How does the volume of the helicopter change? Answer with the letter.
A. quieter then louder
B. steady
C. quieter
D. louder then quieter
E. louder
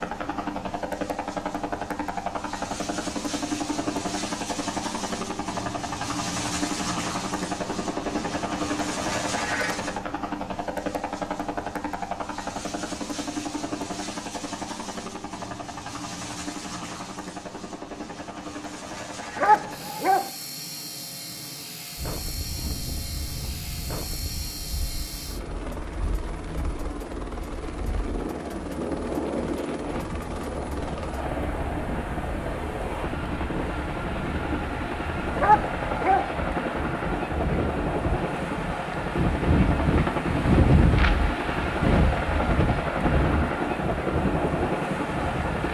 A.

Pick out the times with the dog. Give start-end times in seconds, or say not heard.
19.4-20.3, 35.4-36.3.